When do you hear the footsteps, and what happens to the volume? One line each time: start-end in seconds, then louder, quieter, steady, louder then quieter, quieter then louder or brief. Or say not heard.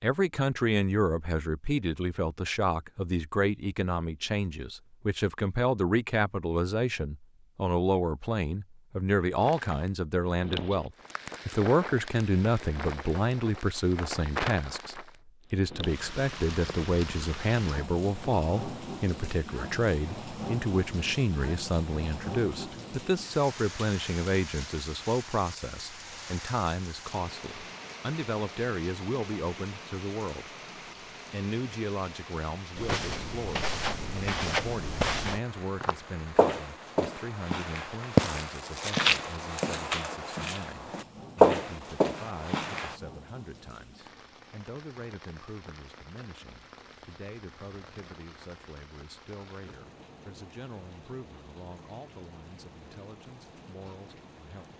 32.8-43.0 louder.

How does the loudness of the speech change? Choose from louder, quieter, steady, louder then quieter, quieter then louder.
quieter.